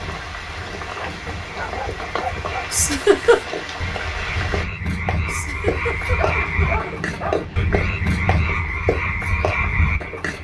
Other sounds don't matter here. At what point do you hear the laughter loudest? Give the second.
3 s.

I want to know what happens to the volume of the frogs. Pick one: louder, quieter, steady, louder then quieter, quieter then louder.
louder.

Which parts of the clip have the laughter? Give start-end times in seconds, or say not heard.
2.7-3.5, 5.2-6.9.